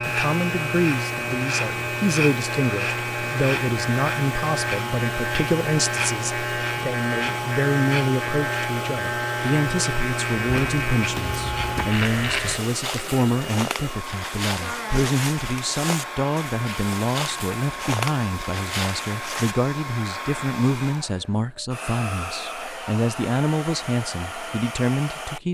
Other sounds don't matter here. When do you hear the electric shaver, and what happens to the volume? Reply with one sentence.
The electric shaver can be heard from 0.0 to 12.6 s, at a steady volume.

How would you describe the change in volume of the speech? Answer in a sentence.
The loudness of the speech stays about the same.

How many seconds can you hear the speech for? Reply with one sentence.
You can hear the speech for 25 seconds altogether.